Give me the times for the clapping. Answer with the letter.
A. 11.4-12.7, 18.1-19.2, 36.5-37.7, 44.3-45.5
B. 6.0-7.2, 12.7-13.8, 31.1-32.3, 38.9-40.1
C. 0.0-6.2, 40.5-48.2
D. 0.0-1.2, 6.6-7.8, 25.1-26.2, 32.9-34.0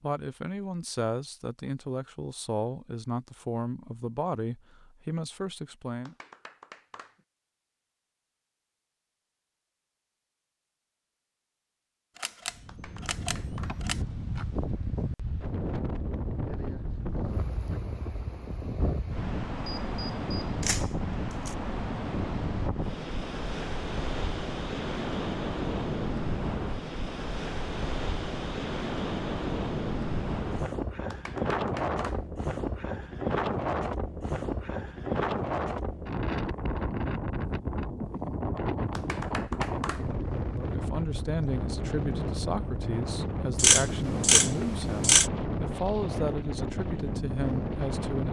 B.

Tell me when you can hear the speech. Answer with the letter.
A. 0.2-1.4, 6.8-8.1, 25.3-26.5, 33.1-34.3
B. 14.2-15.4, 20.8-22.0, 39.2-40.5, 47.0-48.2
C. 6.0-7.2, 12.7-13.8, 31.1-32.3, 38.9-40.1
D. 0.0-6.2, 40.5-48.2
D.